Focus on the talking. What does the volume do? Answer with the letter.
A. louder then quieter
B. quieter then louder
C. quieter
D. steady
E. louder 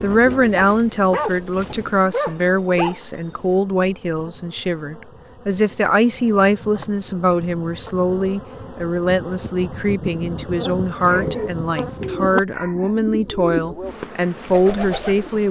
D.